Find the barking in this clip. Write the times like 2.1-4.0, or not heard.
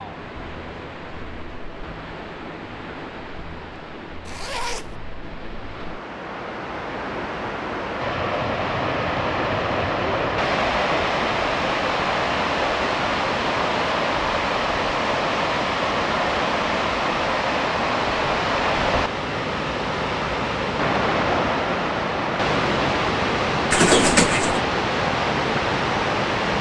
not heard.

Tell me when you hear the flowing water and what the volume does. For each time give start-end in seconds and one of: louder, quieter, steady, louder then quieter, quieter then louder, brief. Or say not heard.
0.0-26.5 louder.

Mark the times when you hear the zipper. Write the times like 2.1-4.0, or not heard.
4.2-5.0, 23.7-24.6.